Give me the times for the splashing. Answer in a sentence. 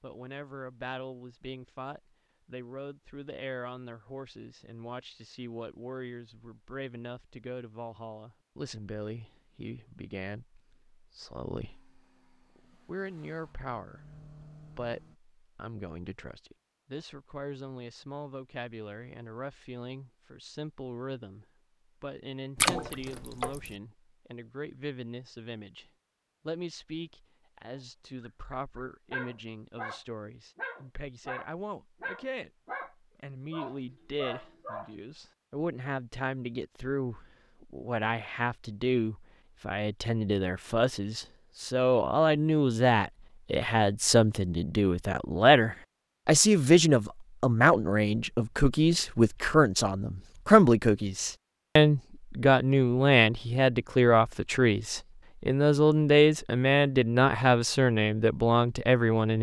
The splashing can be heard from 22.6 to 23.7 s.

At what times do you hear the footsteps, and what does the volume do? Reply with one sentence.
You can't hear the footsteps here.